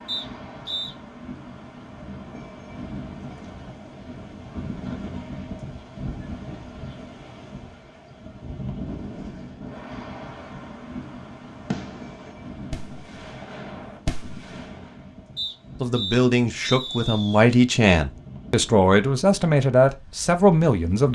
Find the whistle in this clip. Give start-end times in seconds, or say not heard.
0.1-0.9, 15.3-17.4.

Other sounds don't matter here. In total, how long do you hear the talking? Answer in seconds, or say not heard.
5 s.